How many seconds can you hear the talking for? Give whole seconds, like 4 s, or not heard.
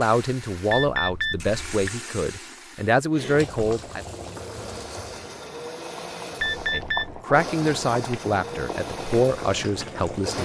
8 s.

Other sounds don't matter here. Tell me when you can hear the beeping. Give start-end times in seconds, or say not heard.
0.7-1.9, 6.4-7.2.